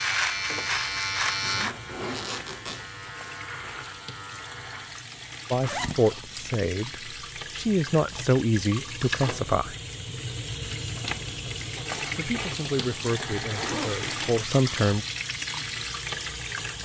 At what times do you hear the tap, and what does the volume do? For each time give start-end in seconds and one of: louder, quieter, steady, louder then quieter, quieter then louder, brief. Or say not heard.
0.0-16.8 louder.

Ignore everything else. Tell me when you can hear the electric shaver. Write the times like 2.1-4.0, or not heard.
0.0-5.0.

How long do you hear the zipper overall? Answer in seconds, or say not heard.
4 s.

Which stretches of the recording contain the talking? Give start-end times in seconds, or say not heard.
5.5-9.8, 12.2-15.1.